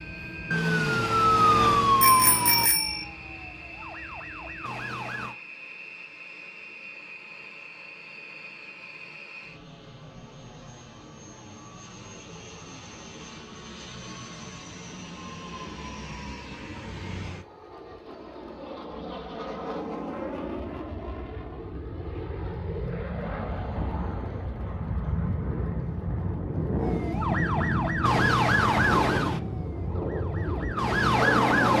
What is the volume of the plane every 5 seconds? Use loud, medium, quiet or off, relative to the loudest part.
quiet, quiet, quiet, medium, medium, loud, loud.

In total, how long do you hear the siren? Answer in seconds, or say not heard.
10 s.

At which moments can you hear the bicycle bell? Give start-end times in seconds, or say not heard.
2.0-3.0.